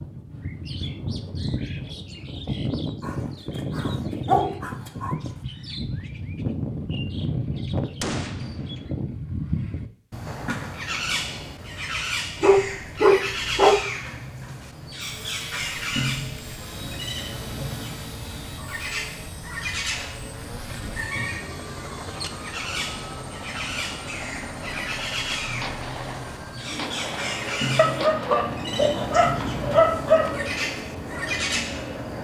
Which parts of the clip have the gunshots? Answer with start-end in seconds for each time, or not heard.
8.0-8.9, 25.4-28.6.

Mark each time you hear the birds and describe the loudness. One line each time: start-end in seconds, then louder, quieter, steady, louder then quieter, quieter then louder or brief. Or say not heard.
0.0-32.1 steady.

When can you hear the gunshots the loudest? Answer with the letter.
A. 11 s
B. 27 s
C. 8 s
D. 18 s
C.